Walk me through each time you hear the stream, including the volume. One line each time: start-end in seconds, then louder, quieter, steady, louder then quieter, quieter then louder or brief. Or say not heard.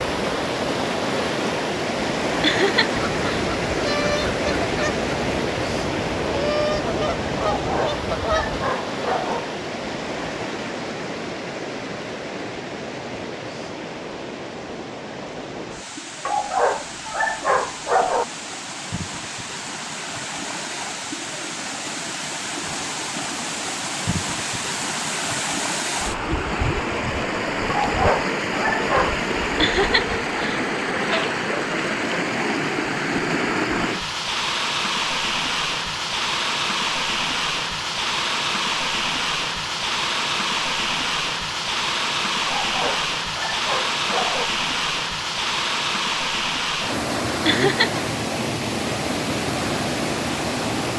0.0-50.9 quieter then louder.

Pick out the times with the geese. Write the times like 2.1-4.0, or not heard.
3.0-8.7.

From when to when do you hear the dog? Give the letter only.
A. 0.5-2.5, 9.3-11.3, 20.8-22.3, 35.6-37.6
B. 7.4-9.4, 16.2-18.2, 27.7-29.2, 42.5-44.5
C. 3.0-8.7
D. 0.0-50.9
B.